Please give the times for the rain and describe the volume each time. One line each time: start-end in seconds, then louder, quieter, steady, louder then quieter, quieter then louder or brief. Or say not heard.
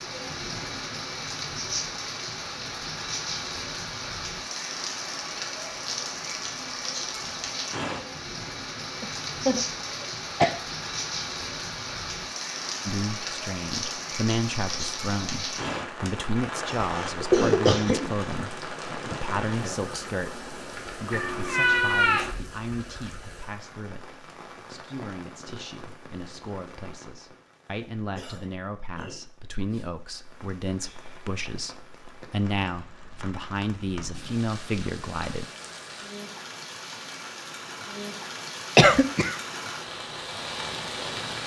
0.0-41.4 quieter then louder.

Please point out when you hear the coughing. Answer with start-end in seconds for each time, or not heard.
9.0-10.6, 16.7-18.4, 38.8-39.4.